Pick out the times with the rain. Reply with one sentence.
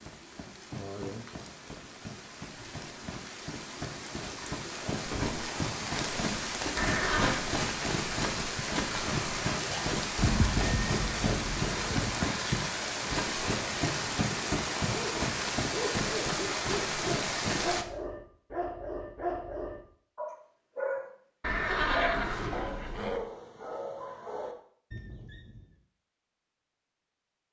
The rain can be heard from 0.0 to 17.9 s.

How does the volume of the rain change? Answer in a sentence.
The loudness of the rain goes up.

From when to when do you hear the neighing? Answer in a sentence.
You can hear the neighing from 6.8 to 7.5 s, from 10.2 to 12.2 s and from 21.4 to 23.2 s.